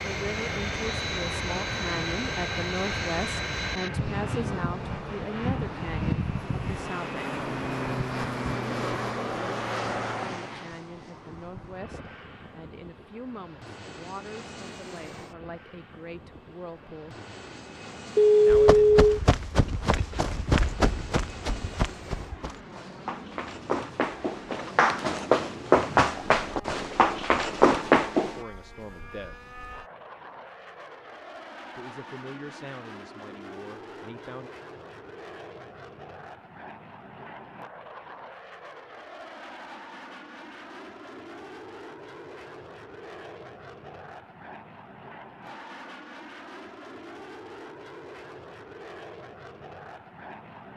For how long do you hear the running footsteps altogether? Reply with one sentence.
The running footsteps can be heard for 10 seconds in total.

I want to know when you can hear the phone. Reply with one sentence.
You can hear the phone from 18.1 to 19.1 s.